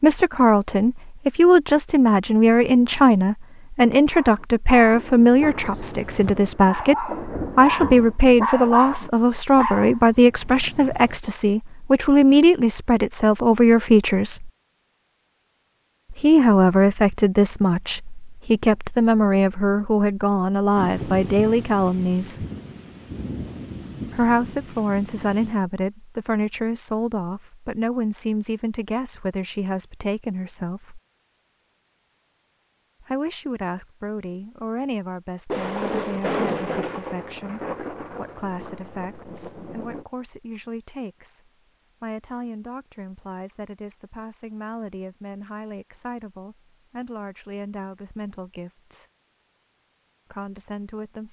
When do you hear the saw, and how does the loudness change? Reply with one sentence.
You can't hear the saw here.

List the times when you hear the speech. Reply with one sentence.
You can hear the speech from 0.0 to 14.5 s, from 16.1 to 22.4 s, from 24.1 to 31.0 s, from 33.0 to 49.0 s and from 50.3 to 51.2 s.